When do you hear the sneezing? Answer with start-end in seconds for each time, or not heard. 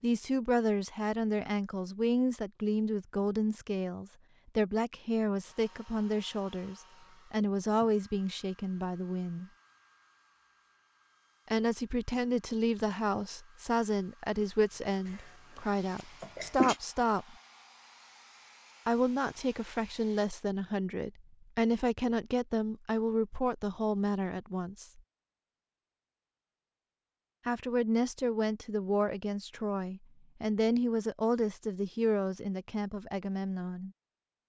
15.1-16.8.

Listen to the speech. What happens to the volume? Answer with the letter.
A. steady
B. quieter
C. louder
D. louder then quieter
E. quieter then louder
A.